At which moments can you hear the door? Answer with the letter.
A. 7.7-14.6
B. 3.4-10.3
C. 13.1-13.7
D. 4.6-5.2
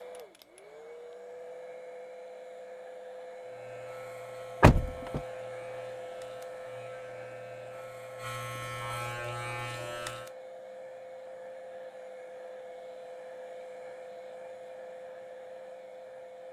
D.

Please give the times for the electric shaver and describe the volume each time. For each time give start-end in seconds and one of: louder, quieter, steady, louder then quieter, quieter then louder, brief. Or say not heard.
3.4-10.3 louder.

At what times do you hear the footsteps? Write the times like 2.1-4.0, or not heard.
not heard.